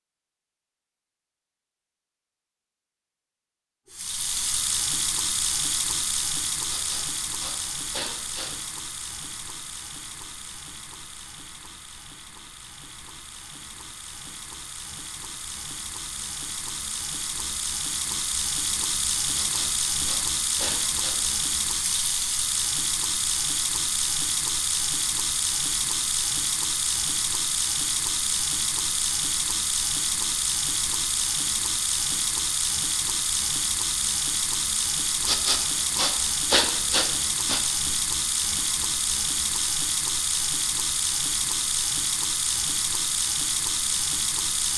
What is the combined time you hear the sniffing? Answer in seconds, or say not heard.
6 s.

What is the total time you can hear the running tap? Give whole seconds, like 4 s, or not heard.
41 s.